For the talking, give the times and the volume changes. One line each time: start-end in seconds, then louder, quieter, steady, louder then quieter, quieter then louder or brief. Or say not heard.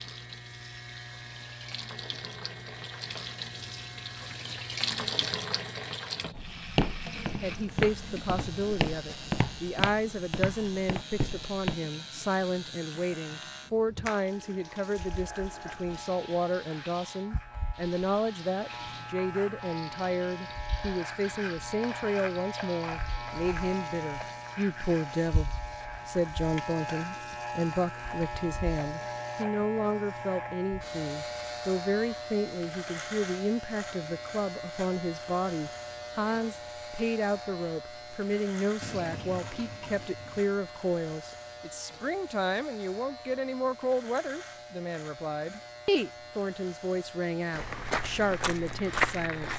7.4-49.5 steady.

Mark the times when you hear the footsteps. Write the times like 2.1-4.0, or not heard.
6.3-11.8, 47.5-49.5.